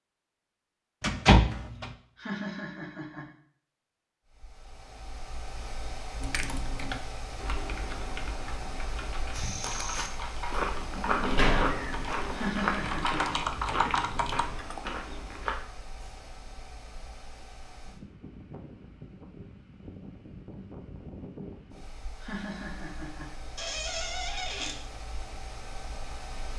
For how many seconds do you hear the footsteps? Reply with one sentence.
You can hear the footsteps for 6 seconds altogether.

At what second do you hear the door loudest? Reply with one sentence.
The loudest moment of the door is at 1 second.